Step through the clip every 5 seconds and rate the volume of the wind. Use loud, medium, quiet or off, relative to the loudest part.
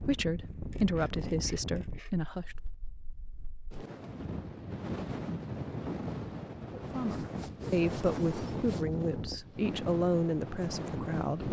medium, loud, loud.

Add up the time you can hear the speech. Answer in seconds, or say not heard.
7 s.